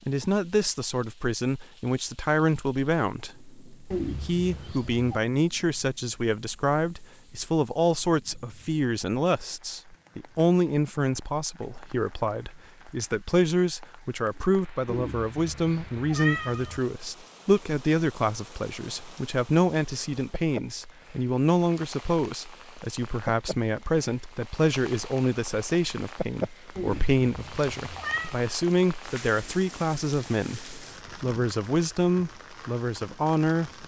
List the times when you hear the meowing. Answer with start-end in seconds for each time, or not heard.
3.9-5.2, 14.8-16.8, 26.8-28.4.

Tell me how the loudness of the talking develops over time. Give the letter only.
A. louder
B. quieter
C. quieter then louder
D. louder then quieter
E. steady
E.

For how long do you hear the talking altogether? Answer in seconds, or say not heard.
34 s.